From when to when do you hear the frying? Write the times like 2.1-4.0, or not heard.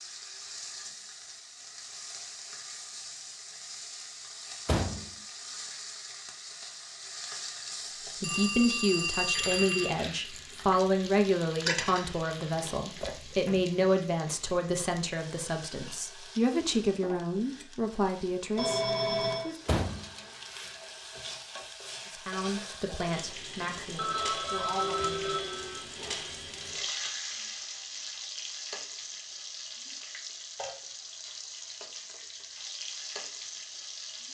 0.0-34.3.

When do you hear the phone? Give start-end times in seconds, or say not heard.
8.2-9.9, 18.6-19.5, 23.9-25.8.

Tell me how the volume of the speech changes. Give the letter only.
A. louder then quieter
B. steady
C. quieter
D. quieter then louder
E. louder
C.